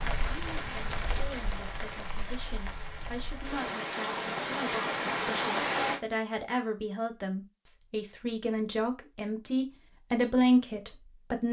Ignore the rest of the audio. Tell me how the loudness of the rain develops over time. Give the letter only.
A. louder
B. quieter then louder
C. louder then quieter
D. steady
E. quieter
B.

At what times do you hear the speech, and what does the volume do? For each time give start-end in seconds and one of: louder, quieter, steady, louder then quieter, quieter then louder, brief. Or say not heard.
0.1-11.4 louder.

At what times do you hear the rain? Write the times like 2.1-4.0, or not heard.
0.0-6.0.